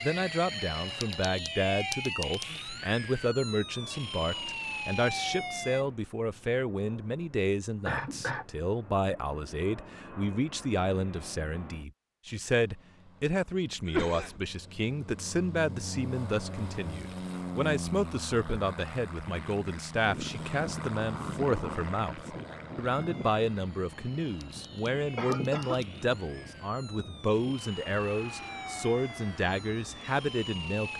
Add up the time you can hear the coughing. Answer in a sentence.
You can hear the coughing for 2 seconds altogether.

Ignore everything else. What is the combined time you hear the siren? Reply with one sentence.
You can hear the siren for 14 seconds altogether.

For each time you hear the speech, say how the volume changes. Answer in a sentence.
You can hear the speech from 0.0 to 30.9 s, at a steady volume.